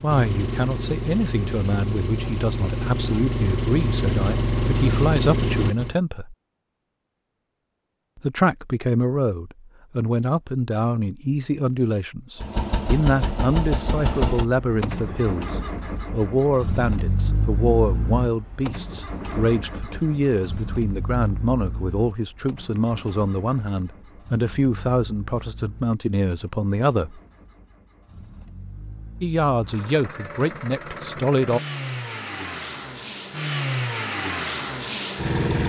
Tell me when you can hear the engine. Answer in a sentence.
You can hear the engine from 0.0 to 6.0 s and from 12.4 to 35.6 s.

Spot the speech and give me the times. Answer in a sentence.
You can hear the speech from 0.0 to 6.3 s, from 8.2 to 27.2 s and from 29.2 to 31.6 s.